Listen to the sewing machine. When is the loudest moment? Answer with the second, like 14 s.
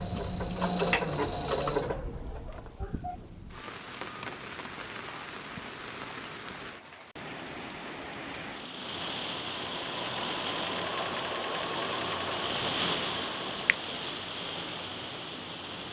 1 s.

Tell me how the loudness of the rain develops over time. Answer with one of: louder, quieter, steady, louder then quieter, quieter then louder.
louder.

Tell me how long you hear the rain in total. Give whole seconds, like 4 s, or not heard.
16 s.